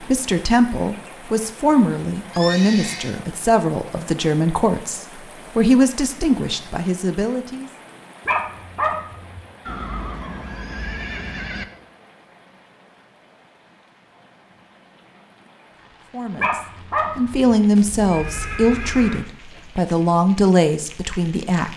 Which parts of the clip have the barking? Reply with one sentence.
You can hear the barking from 8.2 to 9.4 s and from 16.4 to 17.6 s.